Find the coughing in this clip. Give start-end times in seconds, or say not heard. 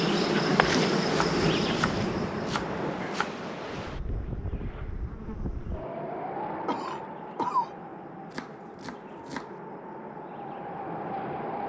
0.3-0.8, 6.7-7.7.